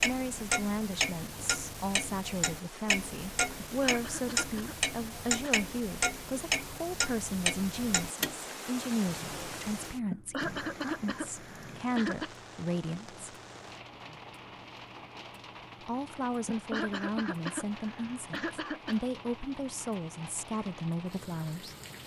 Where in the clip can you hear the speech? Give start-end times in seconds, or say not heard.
0.0-13.2, 15.8-21.8.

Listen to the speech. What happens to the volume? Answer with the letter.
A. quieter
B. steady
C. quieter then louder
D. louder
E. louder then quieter
B.